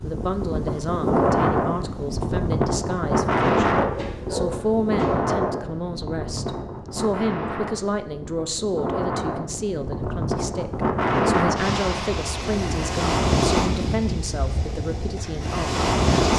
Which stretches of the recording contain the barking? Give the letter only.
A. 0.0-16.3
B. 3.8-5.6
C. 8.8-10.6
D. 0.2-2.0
B.